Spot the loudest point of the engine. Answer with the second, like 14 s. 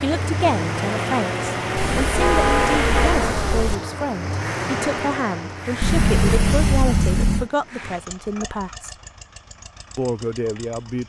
3 s.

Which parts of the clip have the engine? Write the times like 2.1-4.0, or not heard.
0.0-11.0.